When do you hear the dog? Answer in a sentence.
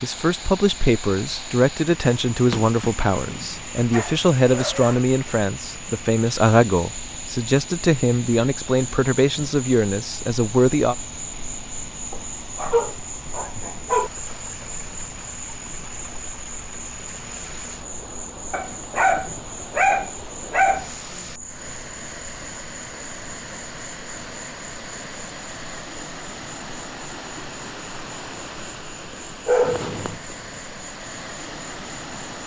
You can hear the dog from 2.5 to 5.0 s, from 12.1 to 14.1 s, from 18.5 to 20.9 s and from 29.1 to 30.4 s.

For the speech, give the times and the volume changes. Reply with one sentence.
You can hear the speech from 0.0 to 10.9 s, at a steady volume.